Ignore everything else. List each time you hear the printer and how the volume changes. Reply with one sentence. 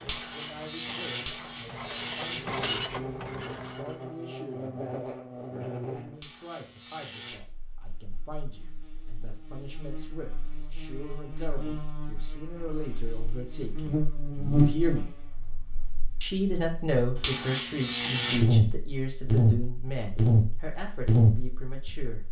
The printer can be heard from 0.0 to 4.2 s, getting louder then quieter.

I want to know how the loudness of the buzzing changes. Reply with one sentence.
The loudness of the buzzing goes down, then up.